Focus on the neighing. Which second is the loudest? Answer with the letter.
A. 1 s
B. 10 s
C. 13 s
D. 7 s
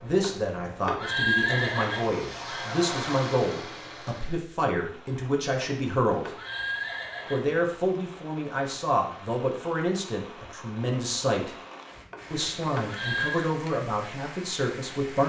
A.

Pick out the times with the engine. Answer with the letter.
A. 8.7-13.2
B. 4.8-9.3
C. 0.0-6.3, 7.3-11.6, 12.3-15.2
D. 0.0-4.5
D.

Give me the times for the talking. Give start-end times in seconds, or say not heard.
0.0-6.3, 7.3-11.6, 12.3-15.2.